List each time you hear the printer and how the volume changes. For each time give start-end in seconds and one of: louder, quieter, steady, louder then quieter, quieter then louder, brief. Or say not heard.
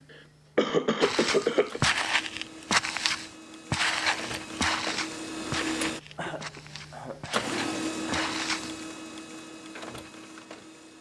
0.0-10.9 louder then quieter.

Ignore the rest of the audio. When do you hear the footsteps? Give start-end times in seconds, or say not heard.
1.0-8.8.